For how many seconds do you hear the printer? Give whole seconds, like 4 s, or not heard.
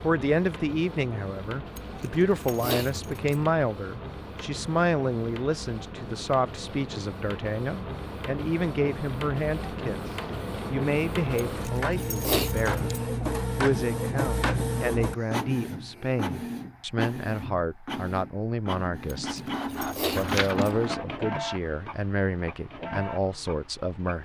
24 s.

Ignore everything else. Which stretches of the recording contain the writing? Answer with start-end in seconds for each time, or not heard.
not heard.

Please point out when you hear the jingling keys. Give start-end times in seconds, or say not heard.
1.8-3.5, 11.4-13.1, 19.1-20.8.